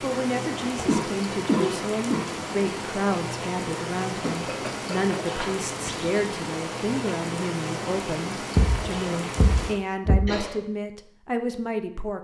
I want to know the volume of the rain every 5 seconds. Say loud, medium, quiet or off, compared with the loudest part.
loud, loud, off.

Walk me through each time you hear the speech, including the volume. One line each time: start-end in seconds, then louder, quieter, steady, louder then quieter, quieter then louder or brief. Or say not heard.
0.0-12.1 steady.